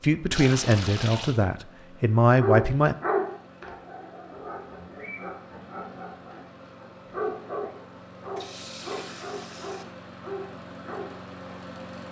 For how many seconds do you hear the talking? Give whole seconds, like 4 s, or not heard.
3 s.